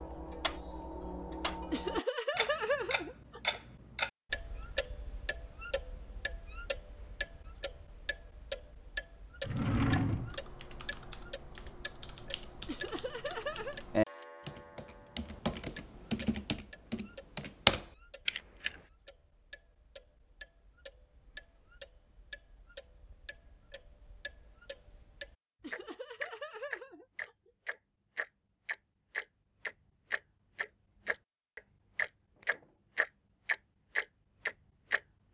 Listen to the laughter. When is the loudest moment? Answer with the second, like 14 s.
3 s.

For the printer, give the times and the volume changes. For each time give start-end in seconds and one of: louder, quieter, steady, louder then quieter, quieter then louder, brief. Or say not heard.
not heard.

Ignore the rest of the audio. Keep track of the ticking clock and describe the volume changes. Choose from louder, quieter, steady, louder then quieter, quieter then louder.
quieter then louder.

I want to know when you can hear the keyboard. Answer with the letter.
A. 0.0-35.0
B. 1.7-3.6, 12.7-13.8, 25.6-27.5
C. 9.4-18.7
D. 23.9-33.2
C.